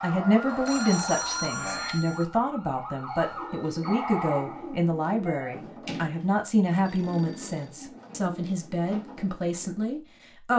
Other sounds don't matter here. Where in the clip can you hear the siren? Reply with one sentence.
You can hear the siren from 0.0 to 5.6 s.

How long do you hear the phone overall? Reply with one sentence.
The phone can be heard for 3 seconds in total.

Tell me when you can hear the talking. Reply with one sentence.
The talking can be heard from 0.0 to 10.5 s.